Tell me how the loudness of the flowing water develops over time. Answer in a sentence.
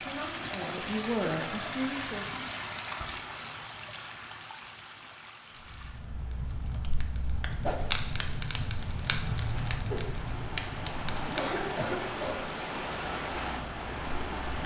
The loudness of the flowing water goes down, then up.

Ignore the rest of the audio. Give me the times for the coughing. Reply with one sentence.
You can hear the coughing from 11.2 to 12.4 s.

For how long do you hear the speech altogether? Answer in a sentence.
The speech can be heard for 2 seconds in total.